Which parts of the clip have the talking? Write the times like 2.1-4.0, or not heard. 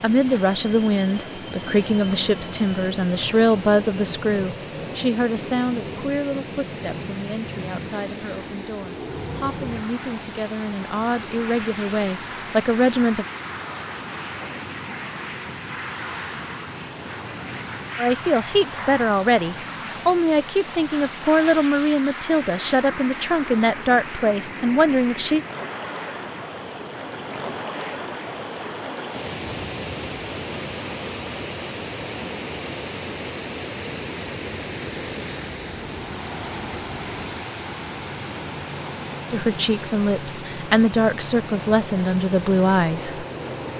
0.0-13.2, 17.9-25.4, 39.3-43.2.